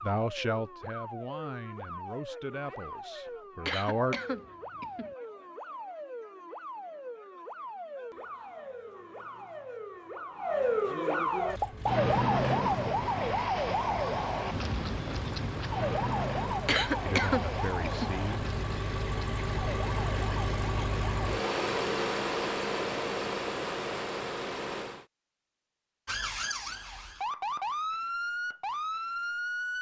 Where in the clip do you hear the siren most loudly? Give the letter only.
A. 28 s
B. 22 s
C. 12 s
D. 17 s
C.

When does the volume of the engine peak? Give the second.
22 s.